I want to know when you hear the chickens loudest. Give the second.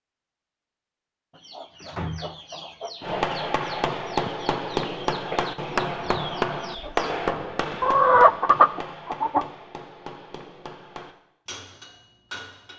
8 s.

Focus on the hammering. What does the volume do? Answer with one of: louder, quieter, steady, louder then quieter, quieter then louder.
quieter.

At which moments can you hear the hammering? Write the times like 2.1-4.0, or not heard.
3.0-12.7.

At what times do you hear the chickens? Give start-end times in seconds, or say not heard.
1.4-9.4.